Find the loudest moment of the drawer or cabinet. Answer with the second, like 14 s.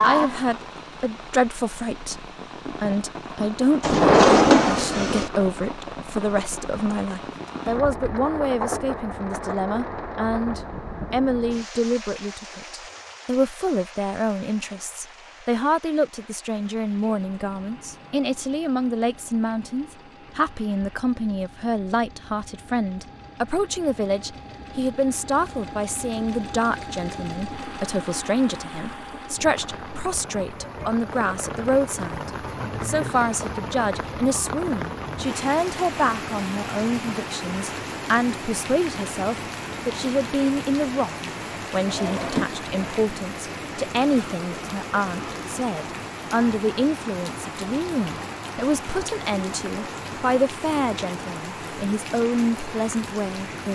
4 s.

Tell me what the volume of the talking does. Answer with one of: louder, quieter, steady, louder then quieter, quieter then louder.
steady.